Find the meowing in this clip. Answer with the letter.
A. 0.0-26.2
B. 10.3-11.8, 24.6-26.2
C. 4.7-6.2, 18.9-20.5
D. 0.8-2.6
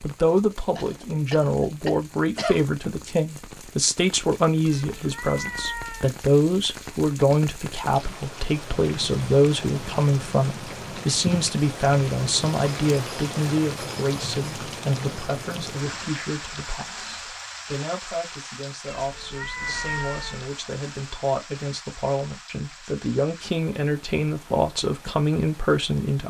C.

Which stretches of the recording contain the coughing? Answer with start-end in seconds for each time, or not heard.
0.8-2.6.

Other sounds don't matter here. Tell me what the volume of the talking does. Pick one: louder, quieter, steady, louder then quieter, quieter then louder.
quieter then louder.